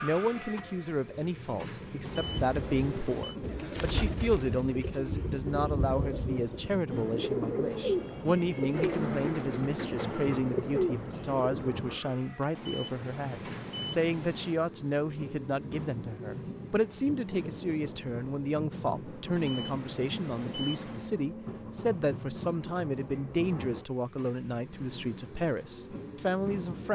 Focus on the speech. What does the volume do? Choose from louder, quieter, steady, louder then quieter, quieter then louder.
steady.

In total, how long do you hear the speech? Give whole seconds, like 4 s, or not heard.
27 s.